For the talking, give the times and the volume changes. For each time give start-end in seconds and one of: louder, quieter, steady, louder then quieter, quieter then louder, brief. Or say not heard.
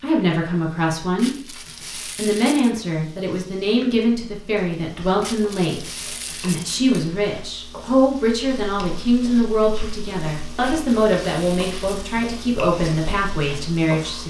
0.0-14.2 steady.